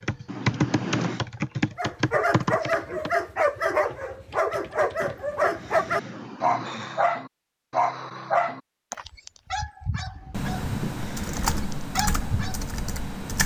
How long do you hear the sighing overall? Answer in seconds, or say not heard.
5 s.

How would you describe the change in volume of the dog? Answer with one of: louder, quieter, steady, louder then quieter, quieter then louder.
quieter.